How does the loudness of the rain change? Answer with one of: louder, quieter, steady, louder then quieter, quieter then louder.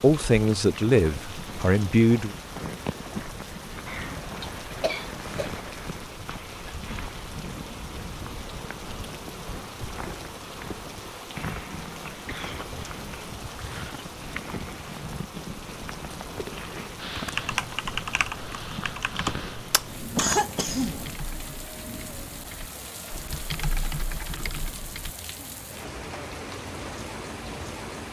steady.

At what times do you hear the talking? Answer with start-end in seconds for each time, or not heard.
0.0-2.3.